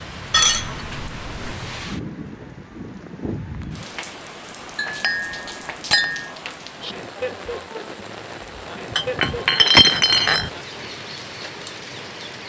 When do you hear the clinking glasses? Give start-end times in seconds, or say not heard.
0.3-1.6, 4.8-6.3, 8.9-10.5.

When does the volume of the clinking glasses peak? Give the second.
10 s.